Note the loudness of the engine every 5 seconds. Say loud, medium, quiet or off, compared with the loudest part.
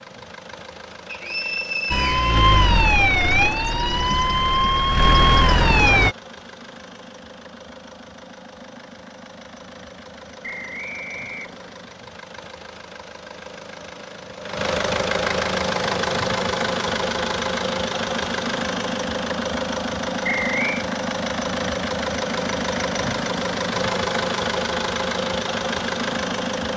quiet, quiet, medium, loud, loud, loud.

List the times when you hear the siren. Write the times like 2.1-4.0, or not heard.
1.9-6.2.